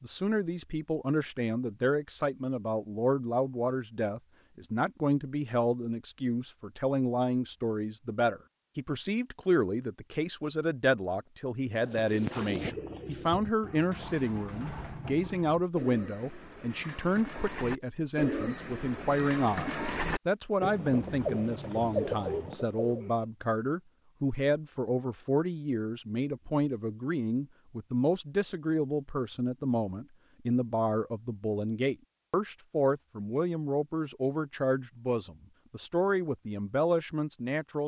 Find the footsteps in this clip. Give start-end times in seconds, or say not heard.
not heard.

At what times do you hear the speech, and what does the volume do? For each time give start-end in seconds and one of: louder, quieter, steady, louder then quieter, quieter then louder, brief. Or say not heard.
0.0-37.8 steady.